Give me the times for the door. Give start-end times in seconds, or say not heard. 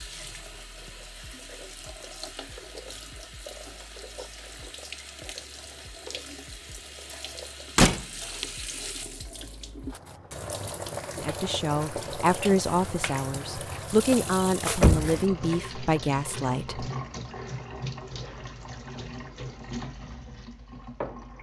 7.8-8.4, 14.4-15.2.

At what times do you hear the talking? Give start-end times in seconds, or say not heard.
11.2-16.9.